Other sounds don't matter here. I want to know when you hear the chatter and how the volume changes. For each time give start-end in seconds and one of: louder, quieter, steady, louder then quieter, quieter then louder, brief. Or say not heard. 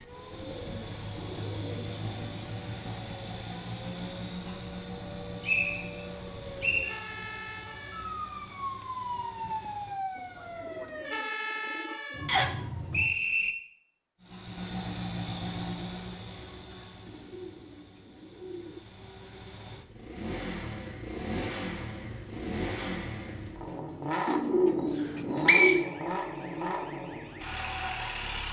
not heard.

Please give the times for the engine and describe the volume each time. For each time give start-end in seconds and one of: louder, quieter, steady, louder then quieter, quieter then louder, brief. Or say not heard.
0.0-11.1 quieter
14.2-28.4 quieter then louder.